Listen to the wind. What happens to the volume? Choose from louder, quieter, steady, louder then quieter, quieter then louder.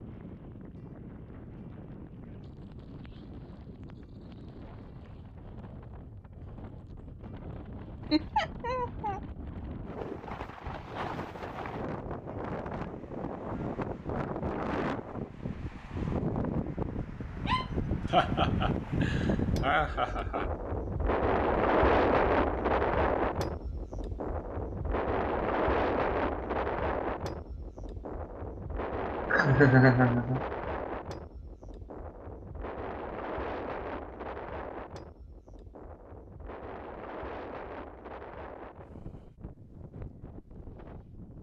louder then quieter.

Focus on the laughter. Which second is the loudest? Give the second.
30 s.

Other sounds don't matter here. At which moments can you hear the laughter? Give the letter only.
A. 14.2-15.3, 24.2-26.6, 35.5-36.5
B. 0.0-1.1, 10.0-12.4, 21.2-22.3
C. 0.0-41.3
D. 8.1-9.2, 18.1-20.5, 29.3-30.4
D.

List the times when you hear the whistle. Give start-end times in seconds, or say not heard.
not heard.